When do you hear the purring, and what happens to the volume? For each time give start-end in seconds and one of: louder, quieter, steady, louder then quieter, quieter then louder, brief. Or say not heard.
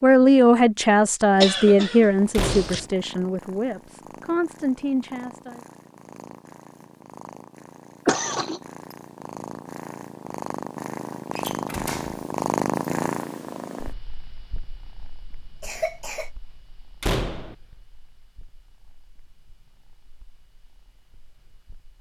2.1-21.9 louder then quieter.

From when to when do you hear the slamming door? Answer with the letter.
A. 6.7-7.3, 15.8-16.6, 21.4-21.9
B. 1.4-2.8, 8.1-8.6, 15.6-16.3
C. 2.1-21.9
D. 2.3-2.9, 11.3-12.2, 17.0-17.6
D.